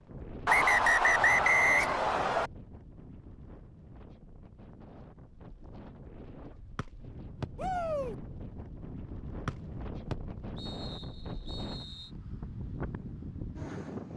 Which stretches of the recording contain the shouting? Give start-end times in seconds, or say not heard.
7.5-8.2.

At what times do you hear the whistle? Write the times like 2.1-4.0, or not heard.
0.5-2.5, 6.8-7.5, 9.4-12.1.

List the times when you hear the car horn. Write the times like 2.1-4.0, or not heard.
not heard.